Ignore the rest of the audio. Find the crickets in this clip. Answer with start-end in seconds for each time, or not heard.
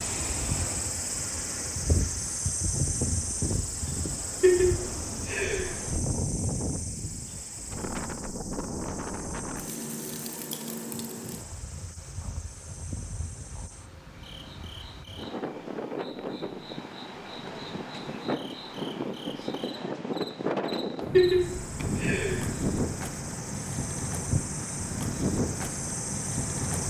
0.0-26.8.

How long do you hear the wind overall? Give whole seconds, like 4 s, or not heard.
27 s.